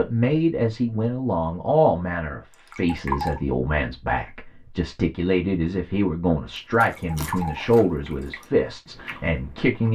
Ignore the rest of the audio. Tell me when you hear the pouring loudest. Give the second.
3 s.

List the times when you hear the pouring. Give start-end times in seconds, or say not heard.
2.5-3.4, 6.9-8.4.